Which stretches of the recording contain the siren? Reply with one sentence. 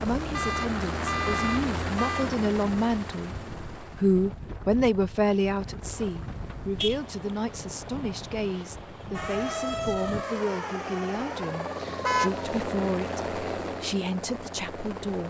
You can hear the siren from 9.1 to 12.7 s.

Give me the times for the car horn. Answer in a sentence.
The car horn can be heard from 0.3 to 2.3 s, from 6.0 to 7.0 s and from 11.8 to 12.4 s.